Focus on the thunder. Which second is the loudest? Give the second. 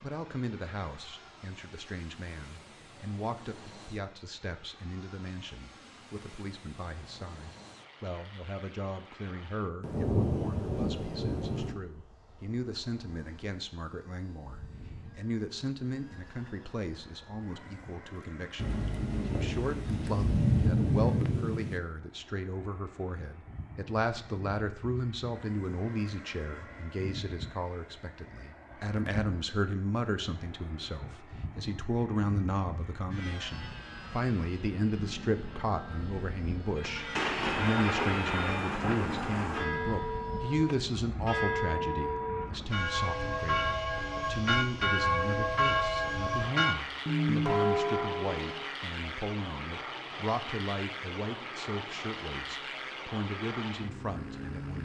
21 s.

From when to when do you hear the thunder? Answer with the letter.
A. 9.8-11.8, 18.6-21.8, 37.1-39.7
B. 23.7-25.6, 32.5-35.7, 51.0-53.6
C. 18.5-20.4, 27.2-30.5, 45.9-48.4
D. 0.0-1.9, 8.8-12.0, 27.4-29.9
A.